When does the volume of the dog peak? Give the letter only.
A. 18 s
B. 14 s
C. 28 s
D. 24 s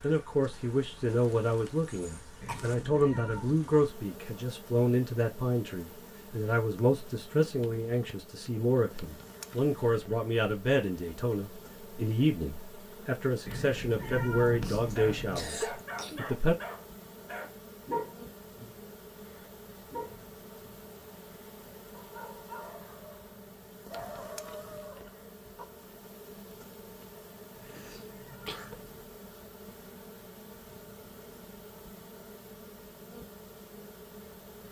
A.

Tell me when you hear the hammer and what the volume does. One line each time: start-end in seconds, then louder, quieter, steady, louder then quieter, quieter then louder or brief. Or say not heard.
not heard.